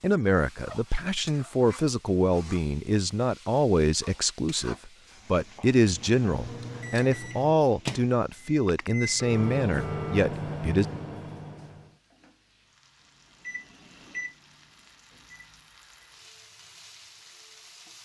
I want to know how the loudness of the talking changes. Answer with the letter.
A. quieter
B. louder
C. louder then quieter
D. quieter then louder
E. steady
E.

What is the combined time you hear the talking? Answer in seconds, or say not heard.
11 s.